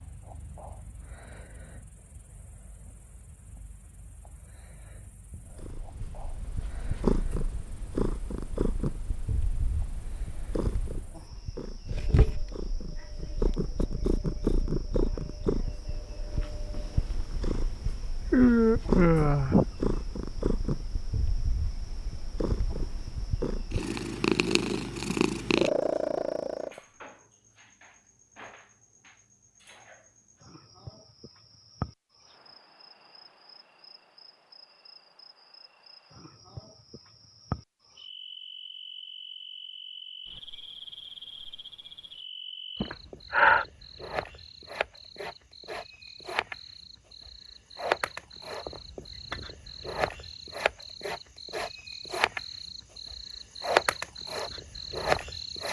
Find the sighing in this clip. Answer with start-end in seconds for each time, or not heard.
18.3-19.6, 42.8-43.6.